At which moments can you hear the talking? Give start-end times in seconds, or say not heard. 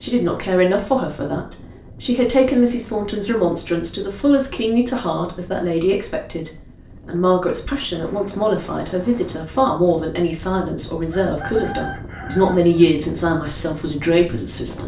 0.0-14.8.